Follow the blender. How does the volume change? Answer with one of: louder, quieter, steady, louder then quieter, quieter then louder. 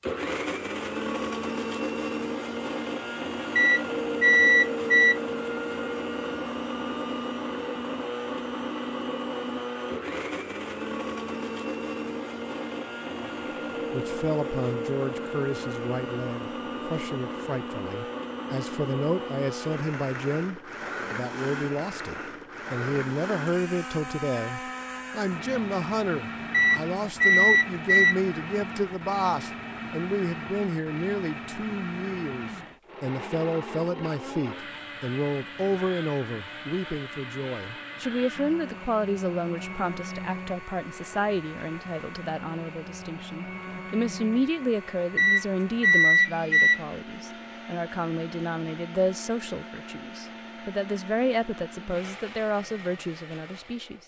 quieter.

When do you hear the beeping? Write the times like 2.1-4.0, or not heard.
3.5-5.2, 26.5-28.1, 45.1-46.8.